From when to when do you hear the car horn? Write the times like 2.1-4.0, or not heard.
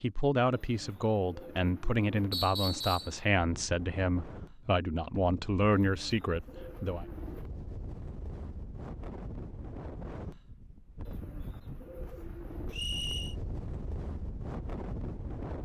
not heard.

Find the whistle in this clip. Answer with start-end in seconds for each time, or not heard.
2.3-3.1, 12.7-13.3.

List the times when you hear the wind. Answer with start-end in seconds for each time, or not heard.
3.4-15.5.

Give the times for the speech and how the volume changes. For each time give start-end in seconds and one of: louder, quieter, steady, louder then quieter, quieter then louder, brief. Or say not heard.
0.0-7.0 steady.